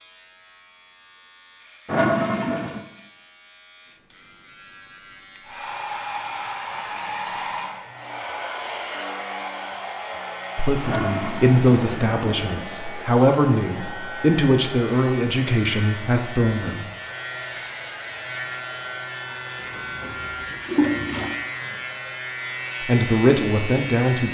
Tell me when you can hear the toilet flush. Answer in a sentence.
The toilet flush can be heard from 1.9 to 2.9 s, from 10.8 to 12.6 s and from 19.6 to 21.4 s.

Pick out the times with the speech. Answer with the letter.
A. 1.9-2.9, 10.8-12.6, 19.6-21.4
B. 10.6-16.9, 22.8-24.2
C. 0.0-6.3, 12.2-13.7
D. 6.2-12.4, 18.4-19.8
B.